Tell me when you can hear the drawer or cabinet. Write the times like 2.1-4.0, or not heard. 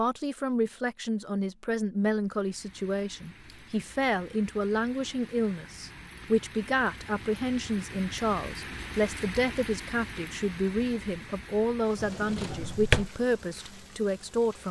11.9-13.2.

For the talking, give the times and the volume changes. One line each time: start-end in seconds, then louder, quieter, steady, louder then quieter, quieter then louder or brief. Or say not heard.
0.0-14.6 steady.